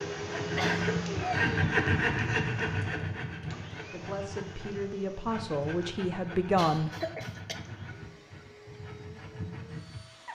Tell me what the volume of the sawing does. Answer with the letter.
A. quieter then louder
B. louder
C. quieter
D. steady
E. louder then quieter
C.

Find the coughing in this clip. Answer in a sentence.
You can hear the coughing from 0.3 to 1.5 s and from 6.5 to 7.6 s.